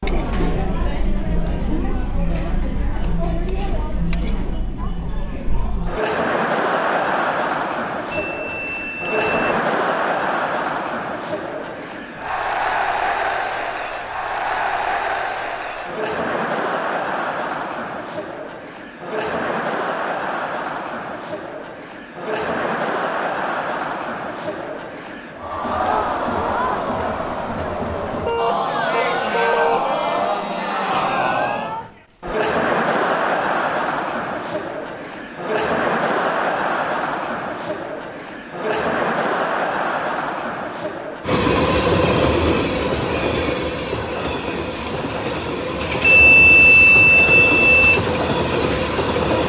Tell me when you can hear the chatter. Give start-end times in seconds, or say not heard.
0.0-41.4.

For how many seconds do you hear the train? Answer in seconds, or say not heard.
8 s.